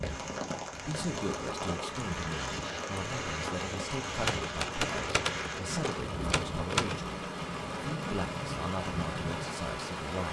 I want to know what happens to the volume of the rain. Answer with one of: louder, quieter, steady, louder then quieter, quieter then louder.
steady.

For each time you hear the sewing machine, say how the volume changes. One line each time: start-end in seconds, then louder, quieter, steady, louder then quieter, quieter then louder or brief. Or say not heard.
0.0-10.2 steady.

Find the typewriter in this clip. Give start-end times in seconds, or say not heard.
4.2-7.0.